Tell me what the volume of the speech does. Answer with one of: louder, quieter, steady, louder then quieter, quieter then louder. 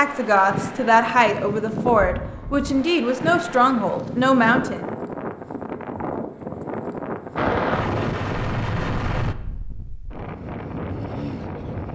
steady.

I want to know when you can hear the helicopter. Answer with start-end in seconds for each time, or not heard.
7.3-9.3.